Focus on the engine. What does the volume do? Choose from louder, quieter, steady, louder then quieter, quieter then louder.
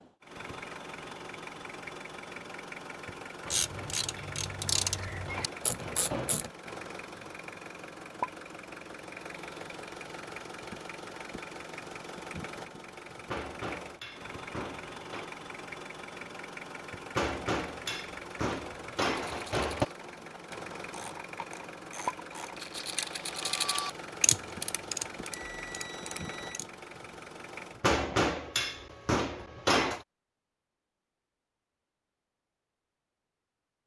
steady.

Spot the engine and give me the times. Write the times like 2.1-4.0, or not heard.
0.0-27.9.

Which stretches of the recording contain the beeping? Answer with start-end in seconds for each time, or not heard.
25.3-26.6.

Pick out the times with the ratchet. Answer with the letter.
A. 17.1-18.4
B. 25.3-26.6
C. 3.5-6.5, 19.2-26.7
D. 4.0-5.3
C.